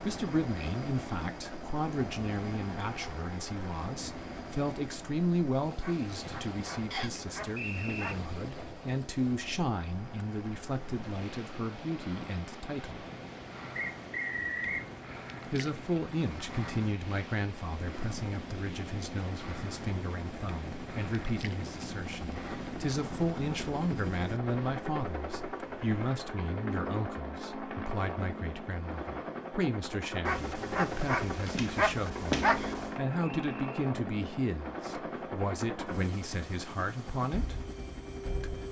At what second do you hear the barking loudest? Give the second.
32 s.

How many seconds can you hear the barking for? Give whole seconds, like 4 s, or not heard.
5 s.